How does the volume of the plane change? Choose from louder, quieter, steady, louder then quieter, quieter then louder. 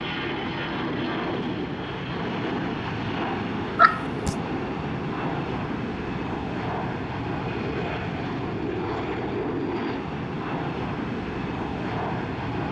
steady.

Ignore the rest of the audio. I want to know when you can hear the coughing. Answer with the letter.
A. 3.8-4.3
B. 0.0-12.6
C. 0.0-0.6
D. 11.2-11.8
A.